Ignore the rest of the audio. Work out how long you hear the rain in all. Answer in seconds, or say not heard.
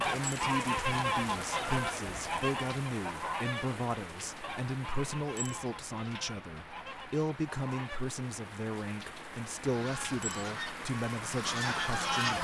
12 s.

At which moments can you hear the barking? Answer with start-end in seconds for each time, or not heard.
not heard.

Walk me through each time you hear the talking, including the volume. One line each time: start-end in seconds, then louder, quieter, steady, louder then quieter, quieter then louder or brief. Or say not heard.
0.0-12.3 steady.